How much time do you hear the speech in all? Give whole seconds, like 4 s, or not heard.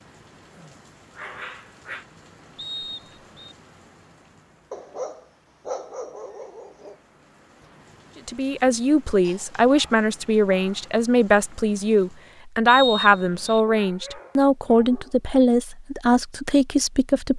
9 s.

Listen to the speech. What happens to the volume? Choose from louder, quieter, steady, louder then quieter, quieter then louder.
steady.